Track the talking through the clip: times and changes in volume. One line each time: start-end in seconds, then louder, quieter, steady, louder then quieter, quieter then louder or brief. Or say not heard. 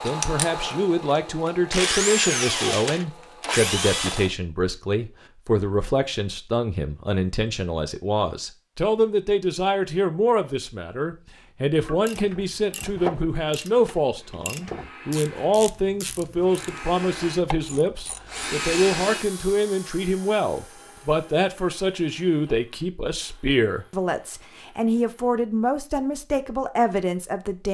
0.0-27.7 steady.